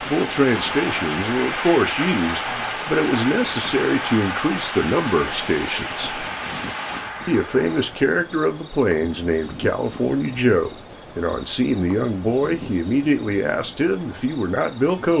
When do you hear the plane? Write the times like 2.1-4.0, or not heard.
0.0-8.1.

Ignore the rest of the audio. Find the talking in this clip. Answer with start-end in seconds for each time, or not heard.
0.1-6.2, 7.2-15.1.